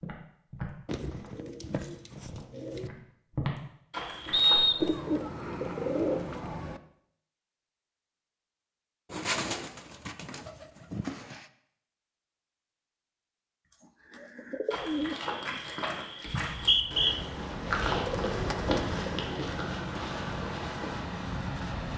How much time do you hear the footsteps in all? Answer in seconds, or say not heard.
11 s.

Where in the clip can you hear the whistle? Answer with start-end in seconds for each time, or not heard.
4.3-4.9, 16.4-17.1.